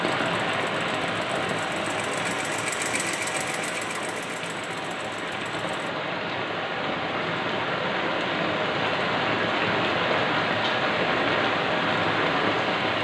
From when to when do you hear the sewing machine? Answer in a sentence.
The sewing machine can be heard from 0.0 to 5.9 s.